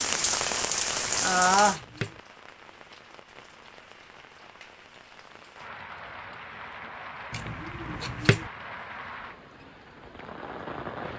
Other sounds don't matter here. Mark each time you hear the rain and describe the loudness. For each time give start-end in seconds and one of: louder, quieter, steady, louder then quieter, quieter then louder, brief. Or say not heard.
0.0-11.1 quieter then louder.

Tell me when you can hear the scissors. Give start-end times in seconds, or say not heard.
1.1-2.2, 7.3-8.5.